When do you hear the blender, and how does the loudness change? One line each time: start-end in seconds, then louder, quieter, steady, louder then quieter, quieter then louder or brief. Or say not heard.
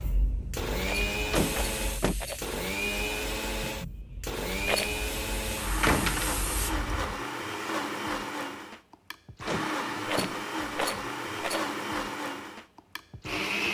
0.0-13.6 steady.